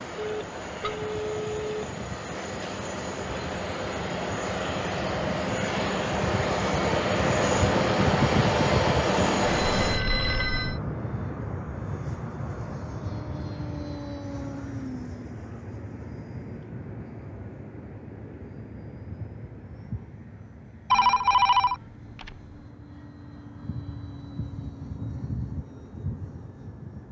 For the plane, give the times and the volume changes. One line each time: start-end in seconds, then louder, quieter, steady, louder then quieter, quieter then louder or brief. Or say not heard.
0.0-27.0 louder then quieter.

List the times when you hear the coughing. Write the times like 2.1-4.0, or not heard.
not heard.